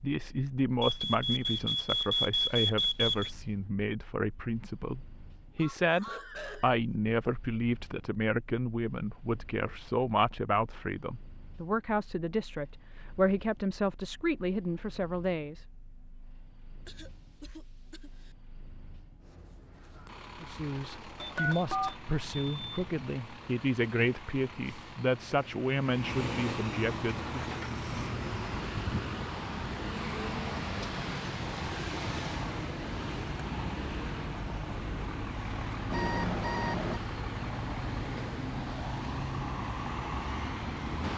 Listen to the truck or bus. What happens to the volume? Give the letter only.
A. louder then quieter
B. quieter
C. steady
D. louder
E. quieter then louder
E.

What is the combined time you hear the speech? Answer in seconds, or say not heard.
23 s.